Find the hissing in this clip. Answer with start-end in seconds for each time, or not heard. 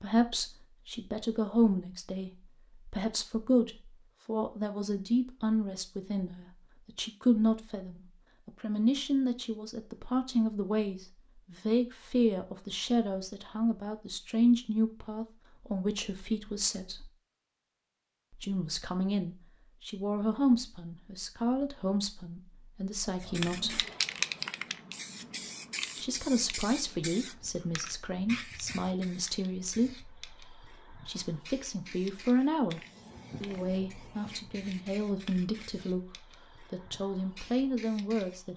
23.2-38.5.